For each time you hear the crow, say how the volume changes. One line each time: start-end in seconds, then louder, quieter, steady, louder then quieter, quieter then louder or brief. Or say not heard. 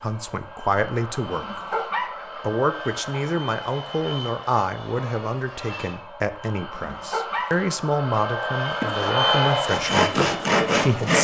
not heard.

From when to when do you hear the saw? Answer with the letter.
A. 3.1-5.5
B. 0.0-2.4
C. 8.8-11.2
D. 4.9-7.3
C.